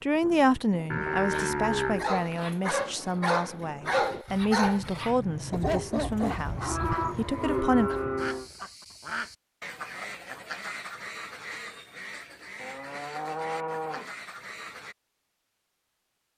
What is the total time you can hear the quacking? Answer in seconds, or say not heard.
9 s.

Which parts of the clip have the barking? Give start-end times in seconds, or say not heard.
1.3-6.5.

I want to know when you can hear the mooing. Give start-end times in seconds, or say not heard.
0.9-2.5, 5.7-8.5, 12.6-14.1.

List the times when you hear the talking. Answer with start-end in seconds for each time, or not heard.
0.0-7.9.